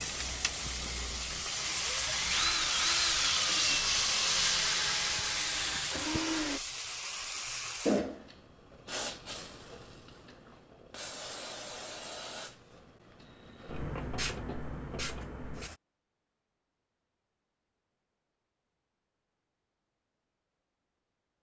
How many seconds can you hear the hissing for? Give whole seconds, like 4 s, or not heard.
16 s.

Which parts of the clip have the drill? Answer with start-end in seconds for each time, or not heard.
0.0-6.6.